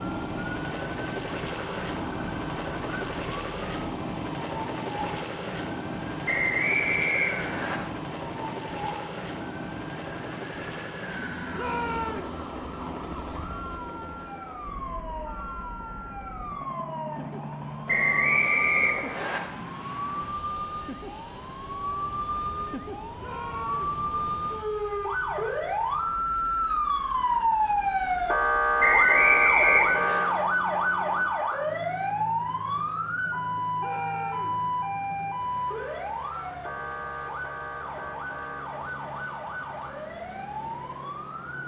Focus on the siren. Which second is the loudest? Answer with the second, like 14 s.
29 s.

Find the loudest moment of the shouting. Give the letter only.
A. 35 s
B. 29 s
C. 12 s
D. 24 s
C.